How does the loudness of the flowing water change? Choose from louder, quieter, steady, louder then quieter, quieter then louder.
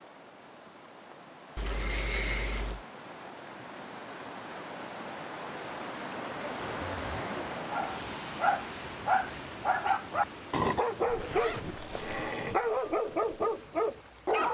louder then quieter.